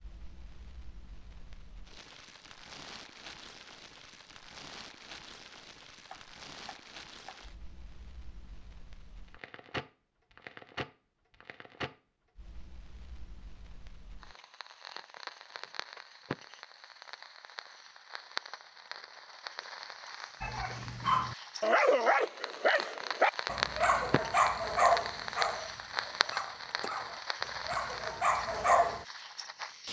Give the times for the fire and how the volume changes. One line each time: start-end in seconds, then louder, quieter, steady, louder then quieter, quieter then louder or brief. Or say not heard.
0.0-29.8 louder.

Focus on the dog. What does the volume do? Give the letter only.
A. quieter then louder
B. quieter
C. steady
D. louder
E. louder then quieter
A.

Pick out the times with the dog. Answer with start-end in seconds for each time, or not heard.
20.4-29.1.